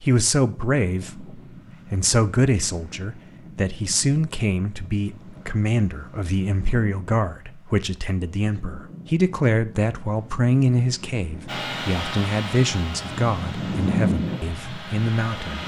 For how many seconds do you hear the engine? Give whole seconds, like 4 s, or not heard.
4 s.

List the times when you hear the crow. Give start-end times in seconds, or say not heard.
not heard.